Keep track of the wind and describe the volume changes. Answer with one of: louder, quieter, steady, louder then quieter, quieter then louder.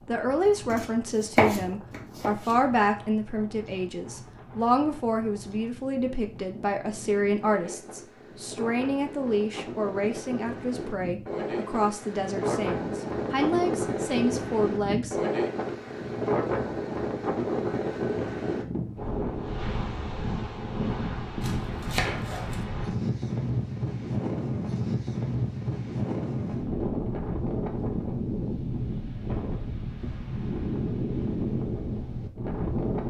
louder.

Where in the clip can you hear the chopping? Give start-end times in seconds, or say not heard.
0.7-2.5, 21.4-22.6.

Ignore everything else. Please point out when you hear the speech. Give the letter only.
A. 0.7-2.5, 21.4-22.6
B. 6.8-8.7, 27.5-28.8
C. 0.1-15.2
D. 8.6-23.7
C.